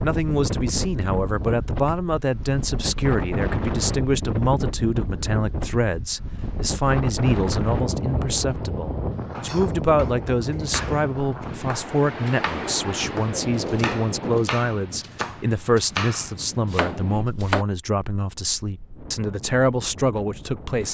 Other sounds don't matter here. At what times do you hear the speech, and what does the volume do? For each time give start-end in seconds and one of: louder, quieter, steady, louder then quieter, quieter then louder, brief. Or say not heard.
0.0-20.8 steady.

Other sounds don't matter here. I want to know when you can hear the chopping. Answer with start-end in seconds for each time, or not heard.
9.3-17.6.